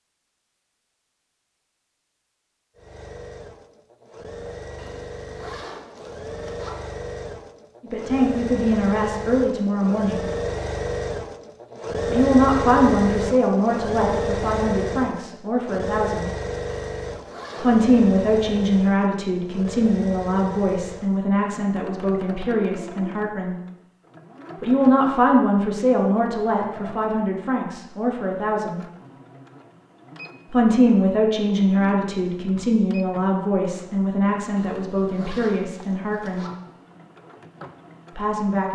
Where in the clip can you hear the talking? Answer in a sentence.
You can hear the talking from 7.8 to 10.2 s, from 12.1 to 16.3 s, from 17.6 to 23.6 s, from 24.6 to 28.8 s, from 30.5 to 36.5 s and from 38.1 to 38.7 s.